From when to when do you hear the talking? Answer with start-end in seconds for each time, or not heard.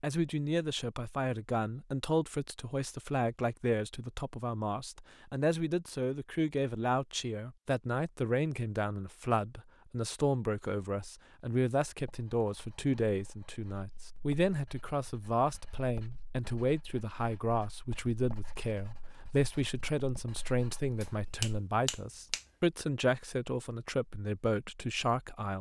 0.0-25.5.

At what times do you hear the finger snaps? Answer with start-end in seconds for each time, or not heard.
21.0-22.4.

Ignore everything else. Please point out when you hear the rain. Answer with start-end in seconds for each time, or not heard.
not heard.